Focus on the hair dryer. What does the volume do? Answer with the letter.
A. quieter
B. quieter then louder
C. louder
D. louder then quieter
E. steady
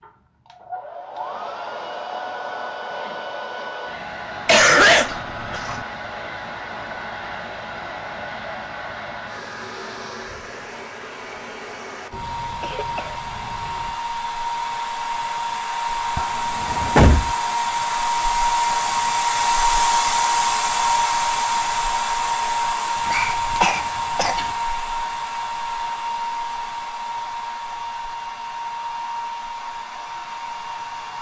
D.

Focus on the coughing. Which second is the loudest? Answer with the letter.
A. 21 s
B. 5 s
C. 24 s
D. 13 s
B.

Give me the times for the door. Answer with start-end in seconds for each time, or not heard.
16.1-17.4.